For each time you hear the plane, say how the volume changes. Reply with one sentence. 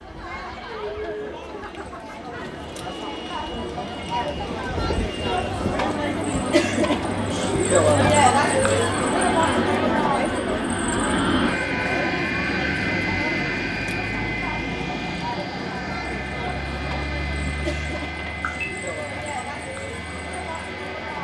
You can hear the plane from 0.0 to 21.1 s, getting louder then quieter.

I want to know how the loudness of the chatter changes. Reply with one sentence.
The volume of the chatter goes up, then down.